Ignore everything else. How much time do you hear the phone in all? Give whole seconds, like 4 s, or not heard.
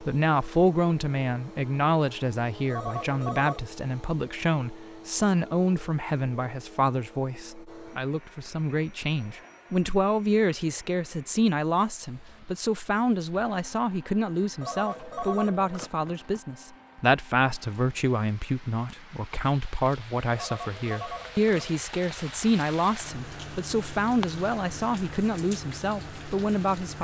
4 s.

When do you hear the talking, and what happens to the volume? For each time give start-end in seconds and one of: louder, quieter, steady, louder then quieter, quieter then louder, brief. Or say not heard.
0.0-27.0 steady.